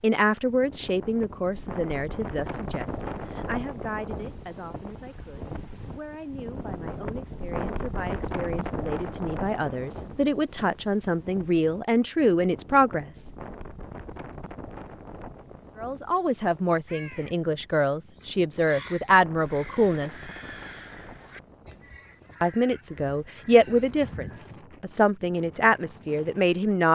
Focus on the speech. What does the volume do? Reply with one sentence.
The volume of the speech goes down, then up.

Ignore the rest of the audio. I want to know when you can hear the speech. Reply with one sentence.
The speech can be heard from 0.0 to 13.3 s, from 15.8 to 20.2 s and from 22.4 to 26.9 s.